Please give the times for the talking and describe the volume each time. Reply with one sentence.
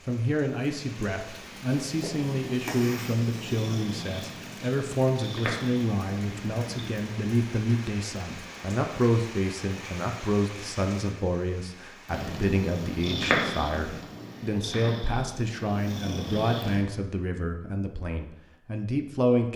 The talking can be heard from 0.1 to 19.5 s, at a steady volume.